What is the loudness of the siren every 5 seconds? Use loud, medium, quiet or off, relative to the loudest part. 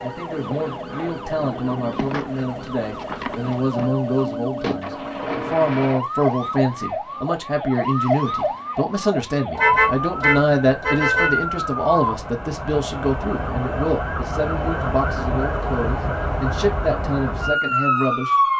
medium, loud, loud, loud.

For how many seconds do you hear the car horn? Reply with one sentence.
The car horn can be heard for 2 seconds in total.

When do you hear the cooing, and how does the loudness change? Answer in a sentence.
The cooing can't be heard in this clip.